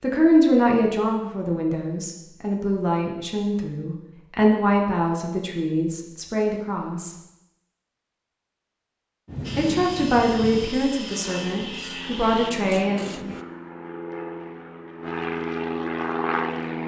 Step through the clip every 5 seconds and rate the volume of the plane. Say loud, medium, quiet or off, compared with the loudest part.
off, off, medium, loud.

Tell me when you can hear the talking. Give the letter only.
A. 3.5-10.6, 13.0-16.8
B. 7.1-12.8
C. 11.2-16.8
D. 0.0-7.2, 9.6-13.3
D.